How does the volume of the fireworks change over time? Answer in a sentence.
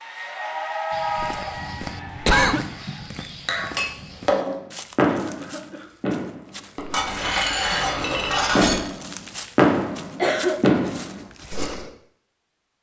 The loudness of the fireworks goes down, then up.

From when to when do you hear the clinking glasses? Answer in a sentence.
The clinking glasses can be heard from 3.5 to 4.5 s and from 6.9 to 8.8 s.